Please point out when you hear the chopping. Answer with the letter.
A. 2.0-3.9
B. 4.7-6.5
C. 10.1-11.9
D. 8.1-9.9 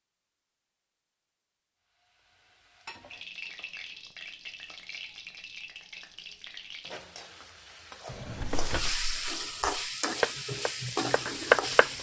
C.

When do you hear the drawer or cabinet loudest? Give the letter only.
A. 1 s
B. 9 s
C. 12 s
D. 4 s
B.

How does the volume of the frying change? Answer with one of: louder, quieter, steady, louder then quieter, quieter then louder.
louder.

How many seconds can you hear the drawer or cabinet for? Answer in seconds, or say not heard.
2 s.